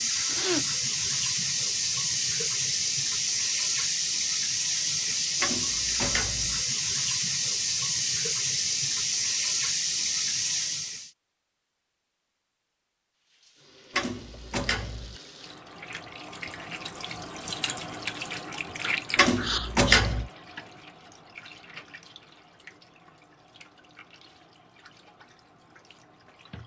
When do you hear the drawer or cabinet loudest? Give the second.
20 s.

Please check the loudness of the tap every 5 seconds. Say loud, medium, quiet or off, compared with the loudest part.
loud, loud, medium, medium, quiet, quiet.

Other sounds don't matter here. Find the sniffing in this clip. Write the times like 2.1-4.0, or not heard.
0.2-0.7, 19.4-20.1.